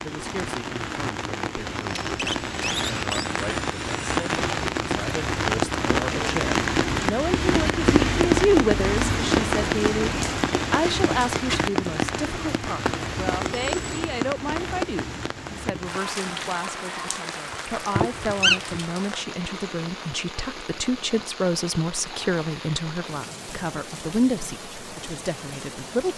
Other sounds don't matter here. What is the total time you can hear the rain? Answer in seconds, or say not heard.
26 s.